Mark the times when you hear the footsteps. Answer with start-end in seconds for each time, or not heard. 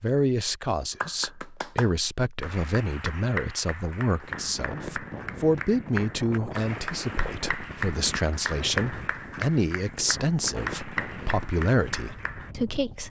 not heard.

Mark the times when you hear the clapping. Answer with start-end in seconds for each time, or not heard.
1.0-12.5.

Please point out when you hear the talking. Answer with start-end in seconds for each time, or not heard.
0.0-13.0.